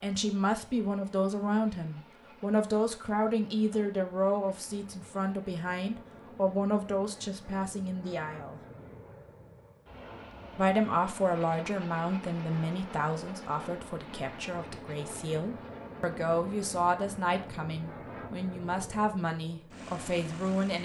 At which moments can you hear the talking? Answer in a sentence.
The talking can be heard from 0.0 to 8.6 s and from 10.6 to 20.7 s.